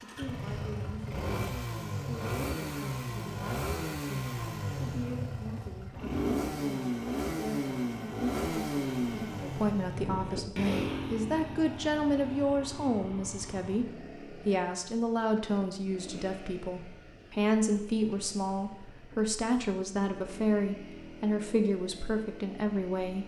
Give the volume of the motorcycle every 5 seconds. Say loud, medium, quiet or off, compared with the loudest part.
loud, loud, medium, quiet, quiet.